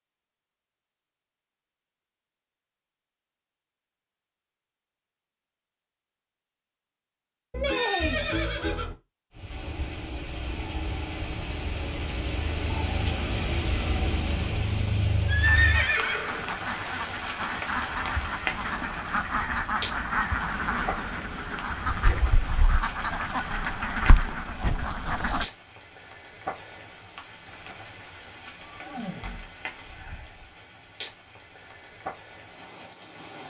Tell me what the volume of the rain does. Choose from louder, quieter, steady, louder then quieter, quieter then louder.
quieter.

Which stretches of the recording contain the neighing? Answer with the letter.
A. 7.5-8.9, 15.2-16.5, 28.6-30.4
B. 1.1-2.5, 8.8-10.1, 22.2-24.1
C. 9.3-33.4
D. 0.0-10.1
A.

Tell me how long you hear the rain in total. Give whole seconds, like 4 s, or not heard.
24 s.